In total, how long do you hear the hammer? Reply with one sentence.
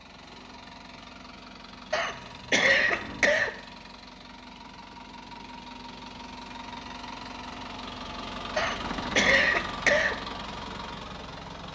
You can't hear the hammer here.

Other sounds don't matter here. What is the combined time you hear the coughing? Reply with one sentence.
The coughing can be heard for 3 seconds in total.